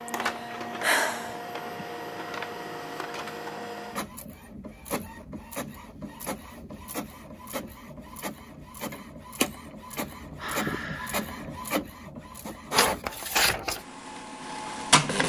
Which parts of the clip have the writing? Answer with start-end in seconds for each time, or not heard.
not heard.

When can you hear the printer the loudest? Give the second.
13 s.